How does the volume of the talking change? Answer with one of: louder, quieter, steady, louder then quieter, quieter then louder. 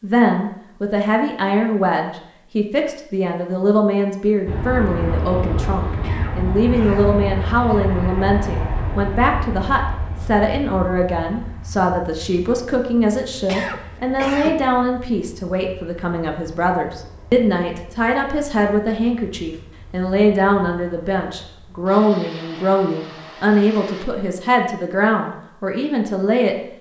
steady.